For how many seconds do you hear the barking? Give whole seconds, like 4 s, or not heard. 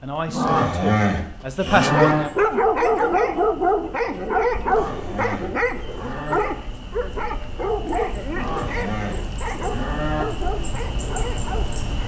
10 s.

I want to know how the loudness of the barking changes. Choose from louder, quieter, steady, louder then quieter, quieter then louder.
quieter.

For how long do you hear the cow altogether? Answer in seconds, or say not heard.
6 s.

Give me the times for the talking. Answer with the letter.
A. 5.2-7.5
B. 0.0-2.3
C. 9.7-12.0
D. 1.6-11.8
B.